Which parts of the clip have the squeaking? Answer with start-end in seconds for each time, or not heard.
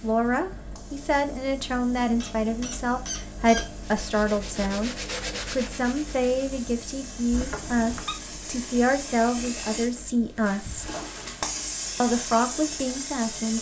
2.2-3.7, 7.3-8.2.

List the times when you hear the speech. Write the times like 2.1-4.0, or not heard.
0.0-10.9, 12.0-13.5.